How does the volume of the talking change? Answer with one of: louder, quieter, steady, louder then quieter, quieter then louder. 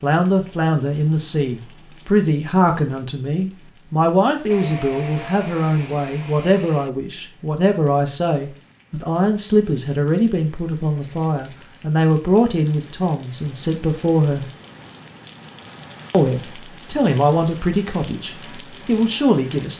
steady.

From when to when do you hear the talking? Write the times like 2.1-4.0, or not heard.
0.0-14.5, 16.1-19.7.